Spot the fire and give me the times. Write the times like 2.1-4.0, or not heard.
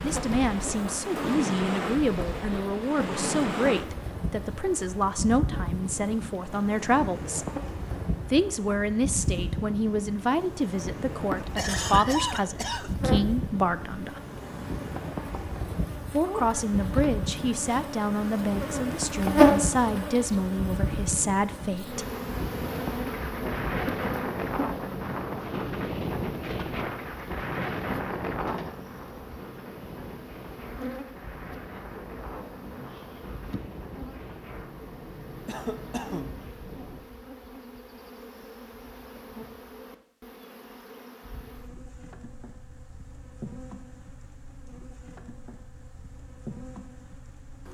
not heard.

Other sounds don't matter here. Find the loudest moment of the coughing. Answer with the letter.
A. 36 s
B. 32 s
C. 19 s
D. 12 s
D.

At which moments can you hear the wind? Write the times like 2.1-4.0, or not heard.
0.0-37.0.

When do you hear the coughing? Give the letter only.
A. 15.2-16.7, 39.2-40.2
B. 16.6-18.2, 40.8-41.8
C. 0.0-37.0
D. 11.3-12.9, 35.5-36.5
D.